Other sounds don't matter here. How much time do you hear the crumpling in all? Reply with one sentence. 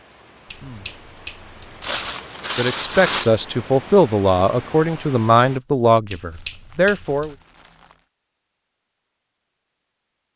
The crumpling can be heard for 3 seconds in total.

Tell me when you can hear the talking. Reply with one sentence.
The talking can be heard from 2.5 to 7.3 s.